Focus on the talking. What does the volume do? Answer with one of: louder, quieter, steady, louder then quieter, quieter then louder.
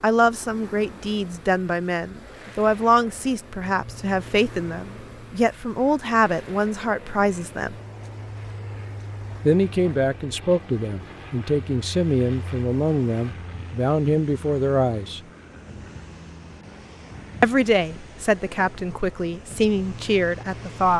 steady.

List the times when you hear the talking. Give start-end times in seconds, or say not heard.
0.0-7.8, 9.4-15.2, 17.4-20.9.